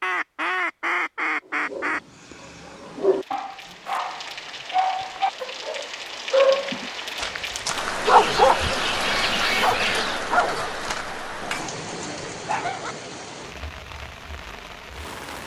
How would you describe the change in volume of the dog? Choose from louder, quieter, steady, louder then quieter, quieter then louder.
louder then quieter.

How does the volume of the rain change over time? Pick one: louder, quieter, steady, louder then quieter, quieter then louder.
louder then quieter.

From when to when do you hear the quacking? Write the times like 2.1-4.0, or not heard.
0.0-2.0, 8.1-10.2.